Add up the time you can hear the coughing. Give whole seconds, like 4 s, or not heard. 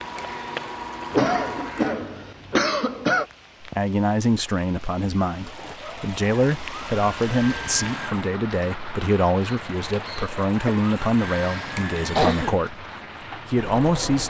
4 s.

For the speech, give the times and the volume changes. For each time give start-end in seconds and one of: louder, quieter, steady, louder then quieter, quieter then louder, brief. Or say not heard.
3.6-12.8 steady
13.4-14.2 brief.